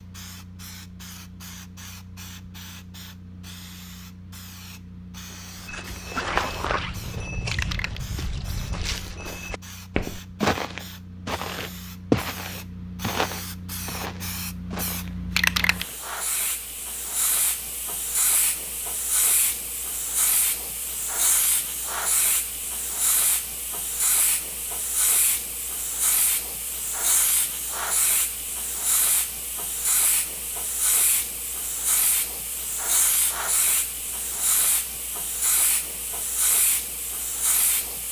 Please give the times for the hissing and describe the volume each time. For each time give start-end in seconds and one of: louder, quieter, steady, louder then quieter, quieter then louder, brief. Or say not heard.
0.0-38.0 louder.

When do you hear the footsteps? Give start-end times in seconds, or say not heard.
5.5-16.0.